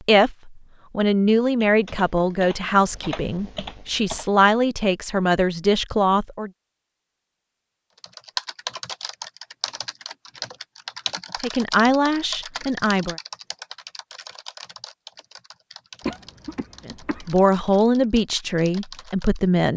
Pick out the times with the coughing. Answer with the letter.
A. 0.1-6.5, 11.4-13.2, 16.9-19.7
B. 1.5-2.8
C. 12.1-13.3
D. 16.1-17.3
D.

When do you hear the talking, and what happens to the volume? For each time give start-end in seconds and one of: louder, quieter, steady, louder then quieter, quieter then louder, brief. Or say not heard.
0.1-6.5 steady
11.4-13.2 brief
16.9-19.7 brief.